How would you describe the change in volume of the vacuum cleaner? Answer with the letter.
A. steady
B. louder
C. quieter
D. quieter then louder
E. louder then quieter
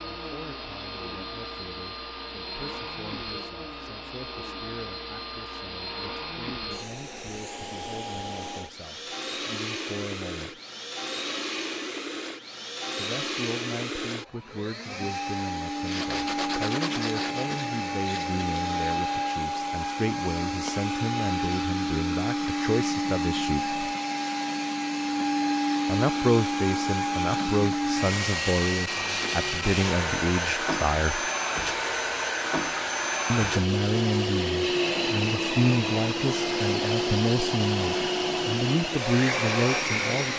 B.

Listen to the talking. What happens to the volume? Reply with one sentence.
The volume of the talking goes up.